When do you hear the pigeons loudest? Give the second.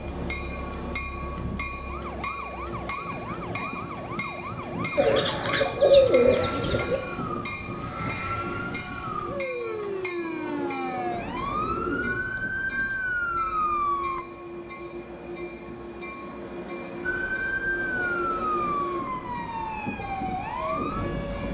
6 s.